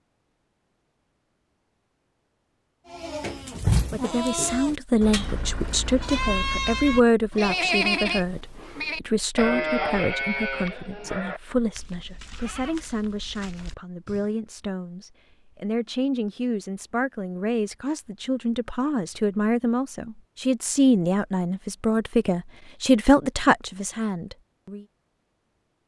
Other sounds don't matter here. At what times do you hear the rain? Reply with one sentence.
The rain can't be heard in this clip.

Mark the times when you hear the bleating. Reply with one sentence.
The bleating can be heard from 2.9 to 14.3 s.